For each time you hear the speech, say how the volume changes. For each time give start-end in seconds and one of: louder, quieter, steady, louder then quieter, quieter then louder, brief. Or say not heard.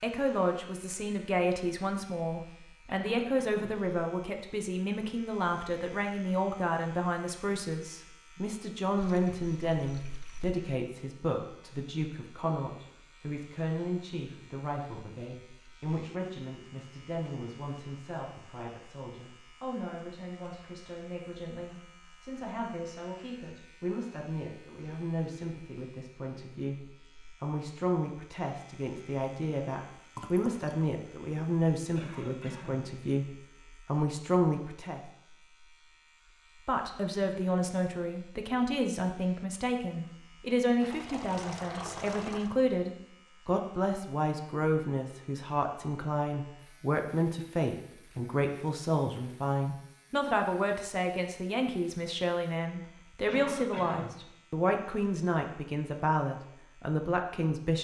0.0-35.0 quieter then louder
36.6-57.7 steady.